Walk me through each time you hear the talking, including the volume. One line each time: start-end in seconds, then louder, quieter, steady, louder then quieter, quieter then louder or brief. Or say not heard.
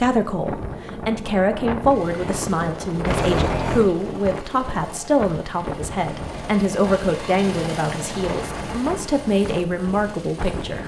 0.0-10.8 steady.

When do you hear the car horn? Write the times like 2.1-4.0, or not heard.
3.0-3.9, 6.0-6.5.